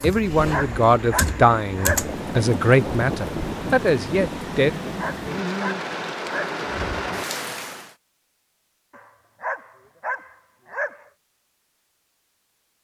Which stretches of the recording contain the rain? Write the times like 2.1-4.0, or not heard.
0.0-8.0.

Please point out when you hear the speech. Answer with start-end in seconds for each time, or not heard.
0.0-4.7.